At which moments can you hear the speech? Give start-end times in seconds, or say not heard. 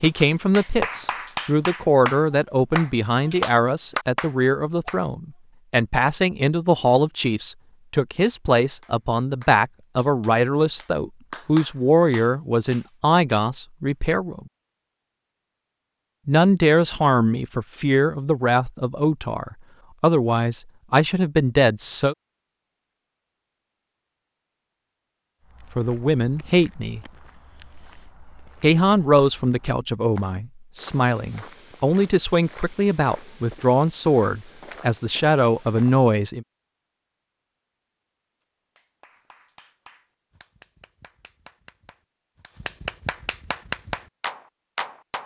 0.0-14.4, 16.2-22.1, 25.8-27.0, 28.6-36.5.